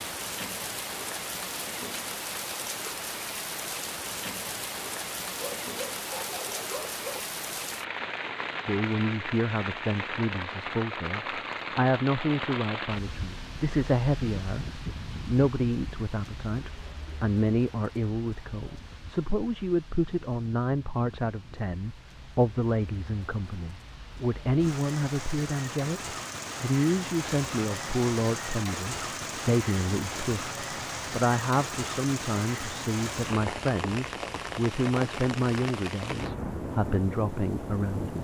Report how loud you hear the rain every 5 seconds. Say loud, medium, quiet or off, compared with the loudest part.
loud, loud, loud, medium, quiet, loud, loud, loud.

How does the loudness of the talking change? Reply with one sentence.
The volume of the talking stays about the same.